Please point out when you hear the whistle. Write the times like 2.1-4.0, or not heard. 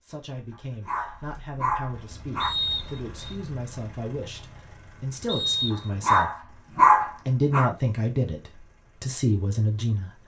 2.4-3.4, 5.2-6.2.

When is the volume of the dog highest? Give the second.
7 s.